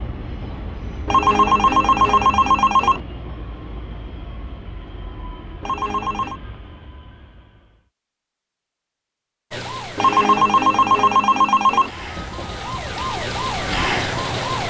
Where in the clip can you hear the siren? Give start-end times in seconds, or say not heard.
9.5-14.6.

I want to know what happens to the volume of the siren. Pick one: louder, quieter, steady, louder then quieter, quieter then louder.
quieter then louder.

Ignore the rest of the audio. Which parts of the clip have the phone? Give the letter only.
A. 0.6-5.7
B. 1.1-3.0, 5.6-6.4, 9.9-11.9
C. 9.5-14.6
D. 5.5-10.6
B.